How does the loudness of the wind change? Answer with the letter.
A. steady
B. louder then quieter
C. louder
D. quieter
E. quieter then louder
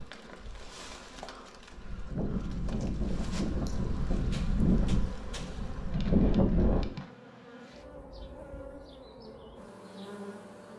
C.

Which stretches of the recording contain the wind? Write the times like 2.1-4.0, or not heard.
0.0-7.0.